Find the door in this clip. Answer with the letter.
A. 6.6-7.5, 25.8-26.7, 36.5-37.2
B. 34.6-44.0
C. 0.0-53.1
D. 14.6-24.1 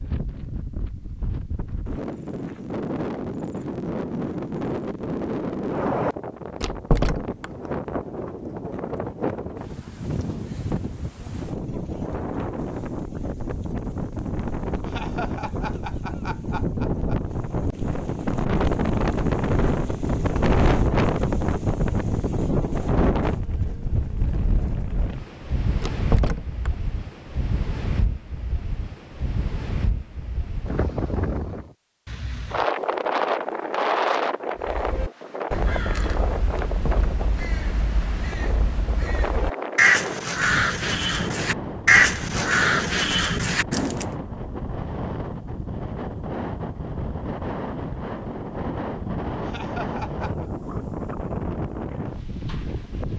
A.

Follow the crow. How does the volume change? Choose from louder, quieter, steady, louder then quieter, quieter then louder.
louder.